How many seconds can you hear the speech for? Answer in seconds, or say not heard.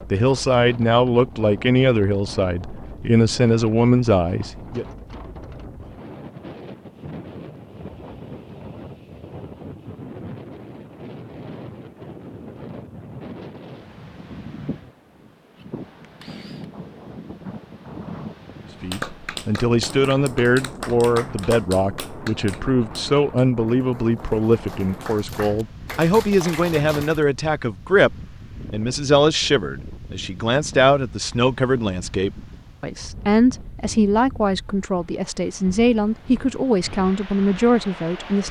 24 s.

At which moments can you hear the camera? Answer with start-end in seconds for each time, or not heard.
15.6-16.7.